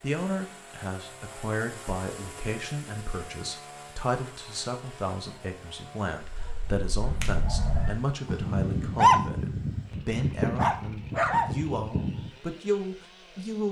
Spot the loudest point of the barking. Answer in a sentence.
The loudest moment of the barking is at 9 seconds.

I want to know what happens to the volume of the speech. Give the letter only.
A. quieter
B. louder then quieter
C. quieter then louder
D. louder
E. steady
E.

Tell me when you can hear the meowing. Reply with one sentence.
You can hear the meowing from 7.0 to 8.0 s.